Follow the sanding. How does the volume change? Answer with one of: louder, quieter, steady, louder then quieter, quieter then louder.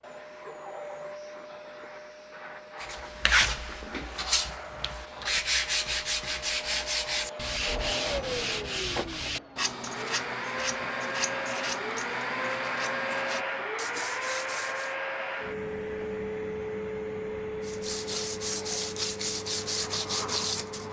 quieter then louder.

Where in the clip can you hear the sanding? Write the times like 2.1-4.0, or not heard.
2.8-14.9, 17.6-20.8.